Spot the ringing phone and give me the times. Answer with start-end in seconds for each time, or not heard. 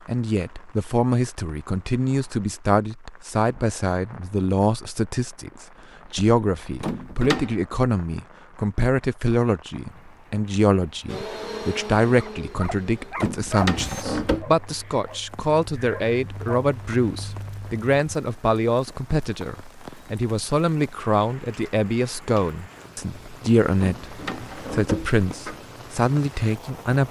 not heard.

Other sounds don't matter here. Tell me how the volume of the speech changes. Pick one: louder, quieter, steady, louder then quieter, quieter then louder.
steady.